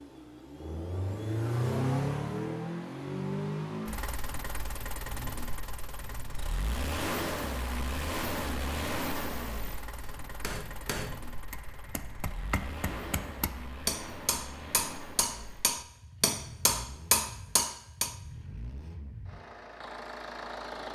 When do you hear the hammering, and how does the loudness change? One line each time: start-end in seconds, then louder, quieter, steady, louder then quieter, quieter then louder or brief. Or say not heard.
9.9-18.1 louder.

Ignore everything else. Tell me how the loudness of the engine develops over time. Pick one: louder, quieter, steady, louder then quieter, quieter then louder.
quieter.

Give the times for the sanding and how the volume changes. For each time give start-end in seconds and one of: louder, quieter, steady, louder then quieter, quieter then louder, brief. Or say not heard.
not heard.